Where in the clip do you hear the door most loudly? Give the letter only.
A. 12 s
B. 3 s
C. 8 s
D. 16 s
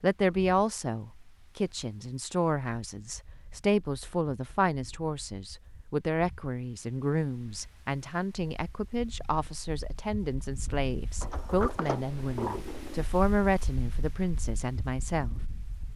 A.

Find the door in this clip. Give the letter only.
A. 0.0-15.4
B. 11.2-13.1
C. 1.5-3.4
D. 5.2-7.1
B.